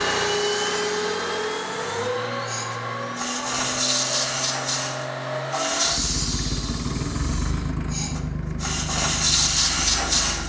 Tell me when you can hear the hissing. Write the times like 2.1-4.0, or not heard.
0.0-10.4.